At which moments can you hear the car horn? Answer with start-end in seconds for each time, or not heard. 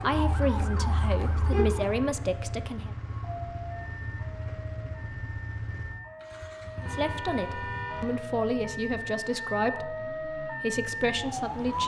0.1-1.9, 6.8-8.2.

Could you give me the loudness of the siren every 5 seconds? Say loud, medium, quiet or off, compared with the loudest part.
medium, medium, loud.